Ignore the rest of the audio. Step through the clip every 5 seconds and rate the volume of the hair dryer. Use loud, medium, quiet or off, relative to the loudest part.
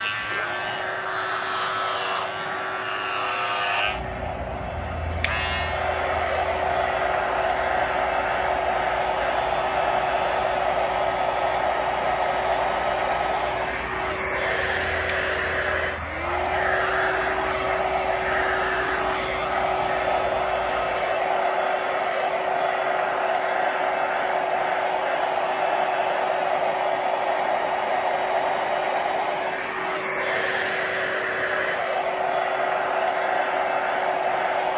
medium, loud, loud, loud, loud, loud, loud.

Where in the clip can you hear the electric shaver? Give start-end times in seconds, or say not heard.
0.0-21.2.